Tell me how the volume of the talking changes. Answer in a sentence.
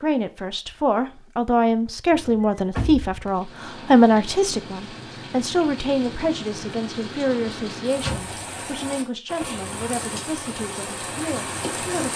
The volume of the talking goes down.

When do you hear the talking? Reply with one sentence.
You can hear the talking from 0.0 to 12.1 s.